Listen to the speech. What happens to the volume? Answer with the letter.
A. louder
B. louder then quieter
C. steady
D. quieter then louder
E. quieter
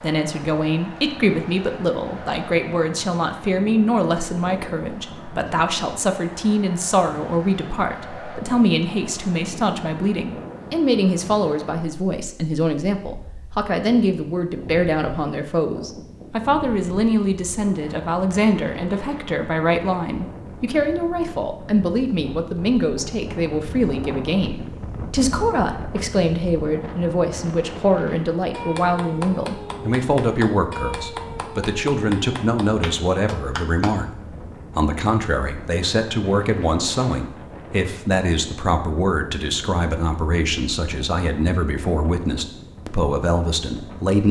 C.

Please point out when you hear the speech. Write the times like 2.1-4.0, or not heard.
0.0-34.1, 34.7-44.2.